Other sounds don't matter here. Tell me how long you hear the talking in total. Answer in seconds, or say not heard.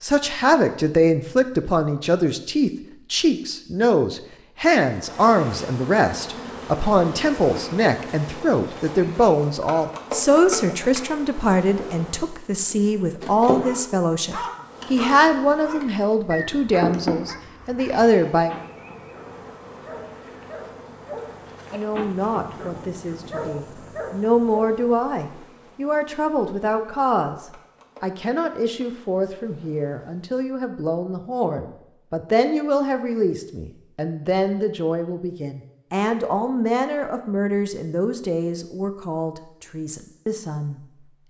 38 s.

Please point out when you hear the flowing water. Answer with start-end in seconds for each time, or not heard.
not heard.